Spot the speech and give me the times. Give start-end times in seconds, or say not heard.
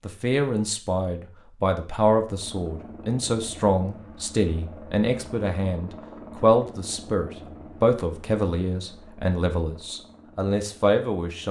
0.1-11.4.